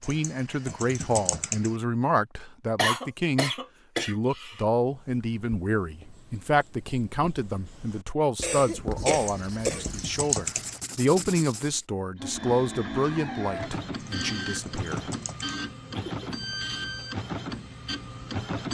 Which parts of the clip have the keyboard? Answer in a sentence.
The keyboard can be heard from 0.0 to 1.8 s, from 9.1 to 10.8 s and from 13.9 to 15.6 s.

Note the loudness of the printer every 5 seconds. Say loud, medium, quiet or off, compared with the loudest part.
off, off, loud, loud.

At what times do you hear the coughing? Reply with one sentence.
You can hear the coughing from 2.8 to 4.6 s, from 8.4 to 9.9 s and from 15.9 to 17.1 s.